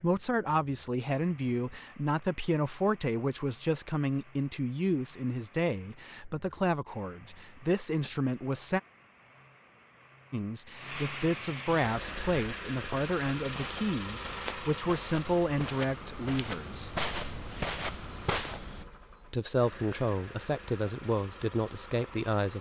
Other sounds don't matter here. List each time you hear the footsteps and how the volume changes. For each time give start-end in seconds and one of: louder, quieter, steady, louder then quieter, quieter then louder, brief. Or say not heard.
11.9-18.9 louder.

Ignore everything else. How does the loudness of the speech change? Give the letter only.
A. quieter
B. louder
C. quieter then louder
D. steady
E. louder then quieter
D.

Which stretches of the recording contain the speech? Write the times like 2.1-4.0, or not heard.
0.0-8.8, 10.3-16.9, 19.3-22.5.